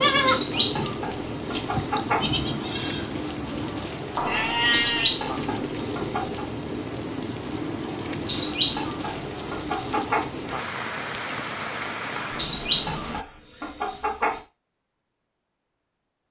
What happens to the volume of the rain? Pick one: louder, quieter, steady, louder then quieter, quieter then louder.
steady.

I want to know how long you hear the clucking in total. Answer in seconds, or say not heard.
8 s.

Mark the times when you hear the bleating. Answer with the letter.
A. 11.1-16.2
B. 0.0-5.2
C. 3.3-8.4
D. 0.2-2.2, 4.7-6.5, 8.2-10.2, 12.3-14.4
B.